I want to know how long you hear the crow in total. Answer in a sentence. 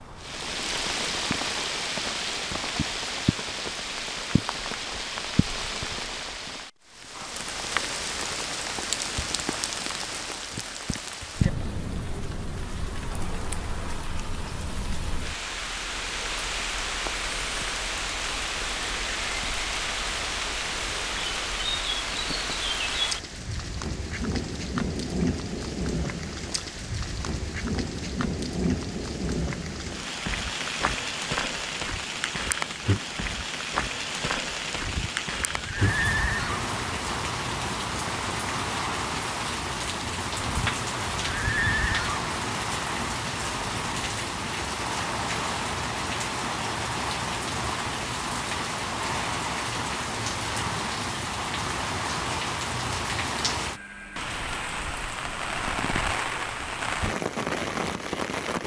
You can't hear the crow here.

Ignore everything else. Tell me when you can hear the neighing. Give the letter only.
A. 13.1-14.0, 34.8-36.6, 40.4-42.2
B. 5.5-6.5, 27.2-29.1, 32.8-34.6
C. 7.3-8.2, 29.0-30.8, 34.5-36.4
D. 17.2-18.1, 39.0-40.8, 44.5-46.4
A.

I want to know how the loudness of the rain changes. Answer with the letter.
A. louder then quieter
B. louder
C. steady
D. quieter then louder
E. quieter
C.